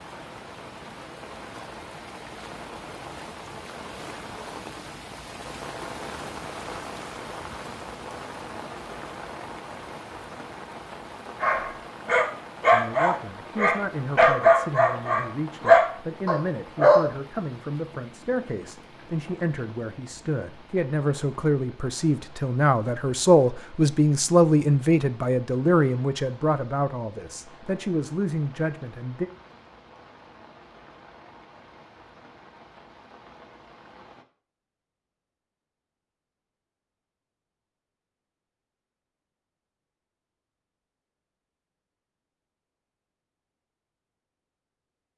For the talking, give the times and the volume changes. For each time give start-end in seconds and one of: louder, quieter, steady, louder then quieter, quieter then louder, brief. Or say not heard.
12.7-29.3 louder then quieter.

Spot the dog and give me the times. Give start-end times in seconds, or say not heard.
11.4-17.1.